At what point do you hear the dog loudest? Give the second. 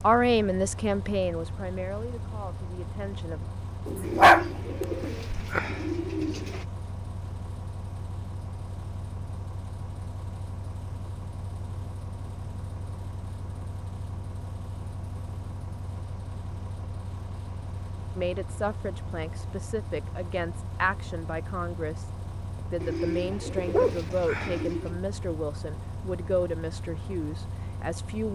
4 s.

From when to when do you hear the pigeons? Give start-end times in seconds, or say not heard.
4.0-6.7, 22.8-25.0.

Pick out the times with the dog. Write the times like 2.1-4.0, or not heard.
3.9-5.6, 23.7-24.6.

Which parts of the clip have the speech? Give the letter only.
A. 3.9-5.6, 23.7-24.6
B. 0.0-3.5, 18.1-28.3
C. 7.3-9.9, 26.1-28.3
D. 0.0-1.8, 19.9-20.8
B.